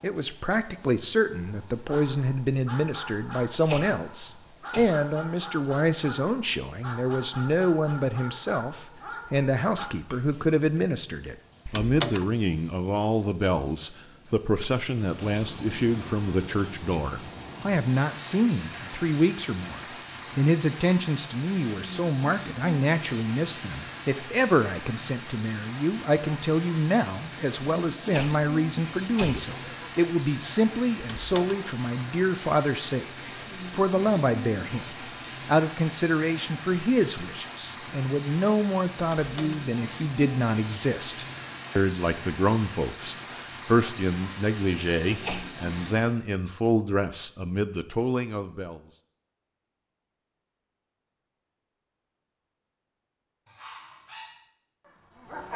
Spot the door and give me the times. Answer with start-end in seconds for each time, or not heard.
11.7-12.3, 31.0-31.6, 39.0-39.6.